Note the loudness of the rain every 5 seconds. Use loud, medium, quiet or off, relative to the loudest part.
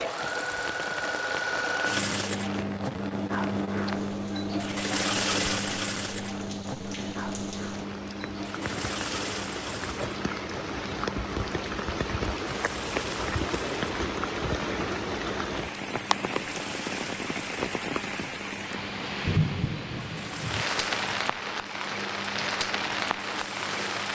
medium, medium, loud, loud, loud.